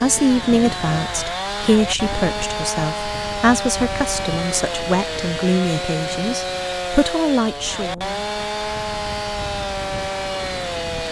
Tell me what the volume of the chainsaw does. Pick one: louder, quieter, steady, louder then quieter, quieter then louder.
steady.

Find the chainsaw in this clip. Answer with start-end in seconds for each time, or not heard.
0.0-11.0.